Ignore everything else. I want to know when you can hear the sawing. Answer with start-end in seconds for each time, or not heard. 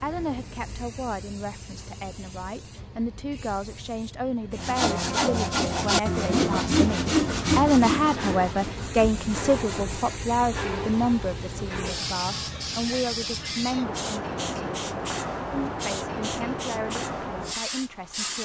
4.5-10.2.